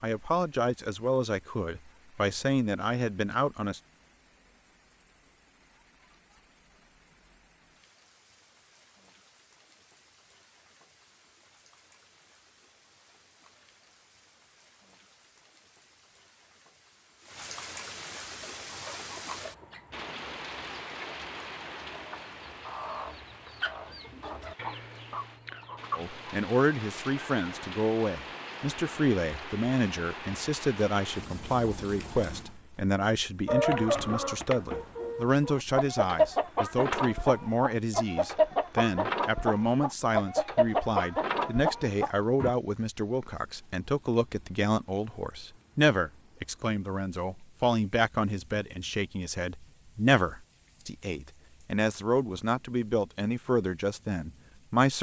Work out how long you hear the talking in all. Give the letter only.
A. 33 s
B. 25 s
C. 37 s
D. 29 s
A.